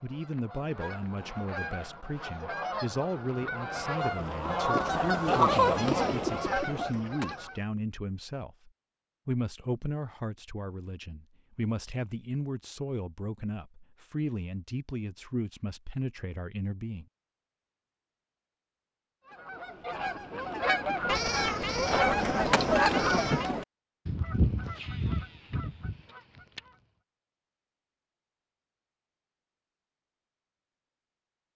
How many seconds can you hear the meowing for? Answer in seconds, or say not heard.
4 s.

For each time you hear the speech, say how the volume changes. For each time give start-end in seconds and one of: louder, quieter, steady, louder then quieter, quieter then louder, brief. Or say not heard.
0.0-17.1 steady.